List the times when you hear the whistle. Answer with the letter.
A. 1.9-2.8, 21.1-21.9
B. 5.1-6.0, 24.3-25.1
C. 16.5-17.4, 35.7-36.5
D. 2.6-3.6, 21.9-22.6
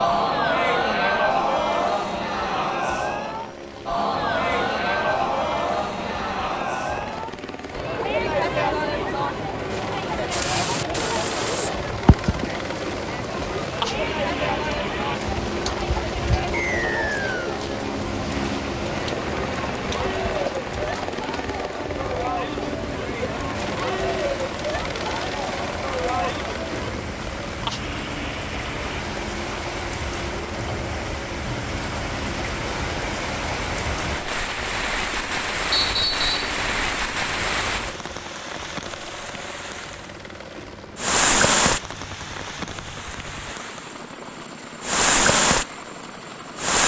C.